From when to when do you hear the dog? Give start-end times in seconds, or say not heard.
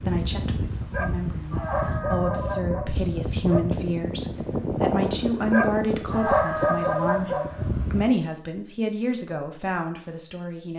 0.9-3.6, 5.5-7.7.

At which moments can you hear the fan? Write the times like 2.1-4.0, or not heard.
0.0-8.1.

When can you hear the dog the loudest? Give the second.
6 s.